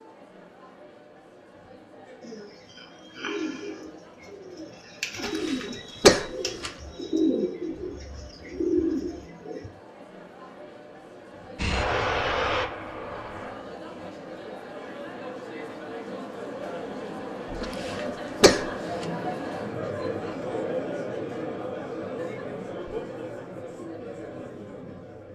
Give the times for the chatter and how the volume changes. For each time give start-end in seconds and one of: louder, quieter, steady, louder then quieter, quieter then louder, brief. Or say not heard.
0.0-25.3 louder.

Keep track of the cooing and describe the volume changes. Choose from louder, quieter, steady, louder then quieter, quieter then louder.
louder.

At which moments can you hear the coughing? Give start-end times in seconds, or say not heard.
5.2-6.7, 17.6-19.1.